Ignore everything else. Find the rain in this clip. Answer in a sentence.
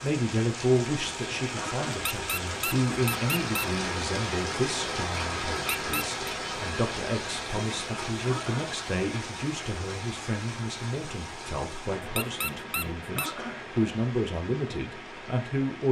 You can hear the rain from 0.0 to 15.8 s.